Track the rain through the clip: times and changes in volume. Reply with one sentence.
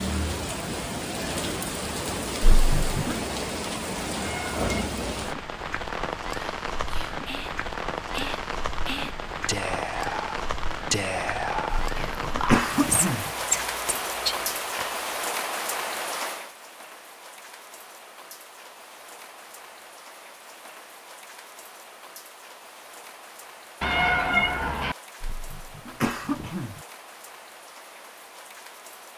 The rain can be heard from 0.0 to 29.1 s, getting quieter.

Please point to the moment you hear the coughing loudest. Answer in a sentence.
The loudest moment of the coughing is at 13 seconds.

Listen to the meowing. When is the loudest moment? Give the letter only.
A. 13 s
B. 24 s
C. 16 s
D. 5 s
B.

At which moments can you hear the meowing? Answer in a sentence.
The meowing can be heard from 4.2 to 4.7 s and from 23.8 to 24.9 s.